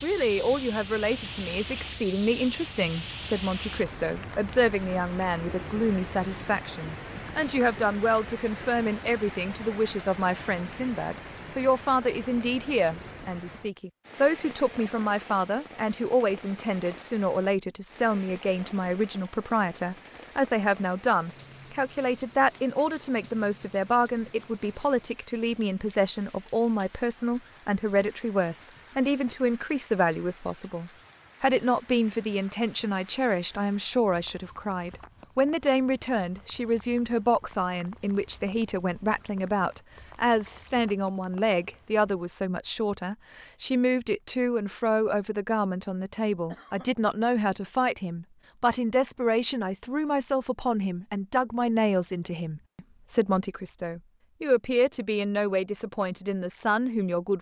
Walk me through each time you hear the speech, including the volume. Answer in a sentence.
You can hear the speech from 0.0 to 57.3 s, at a steady volume.